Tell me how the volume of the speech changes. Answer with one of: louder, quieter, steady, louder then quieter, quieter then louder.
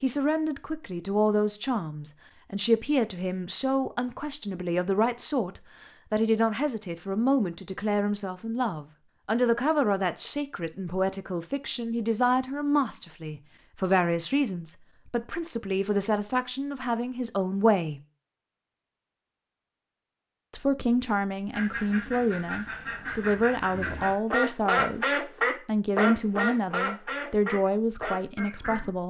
steady.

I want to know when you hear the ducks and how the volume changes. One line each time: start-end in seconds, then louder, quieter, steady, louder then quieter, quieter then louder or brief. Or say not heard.
21.5-28.9 louder then quieter.